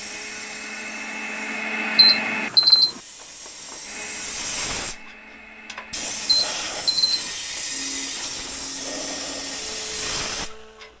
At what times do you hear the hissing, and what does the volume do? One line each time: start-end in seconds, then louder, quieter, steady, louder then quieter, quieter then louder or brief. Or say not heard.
0.0-10.9 louder.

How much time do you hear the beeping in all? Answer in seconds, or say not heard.
2 s.